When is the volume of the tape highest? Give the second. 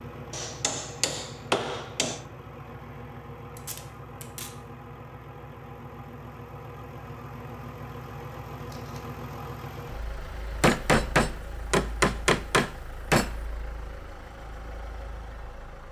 4 s.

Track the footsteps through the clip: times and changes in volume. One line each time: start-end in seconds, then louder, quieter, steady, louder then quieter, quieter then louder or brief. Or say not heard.
not heard.